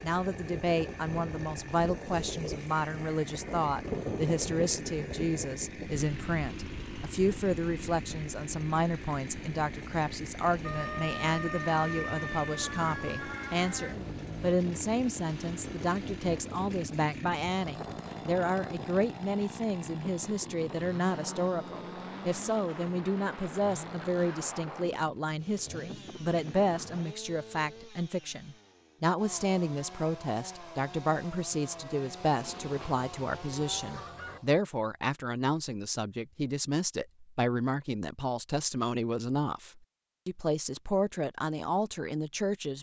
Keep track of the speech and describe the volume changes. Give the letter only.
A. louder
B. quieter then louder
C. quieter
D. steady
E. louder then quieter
D.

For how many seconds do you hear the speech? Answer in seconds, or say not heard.
43 s.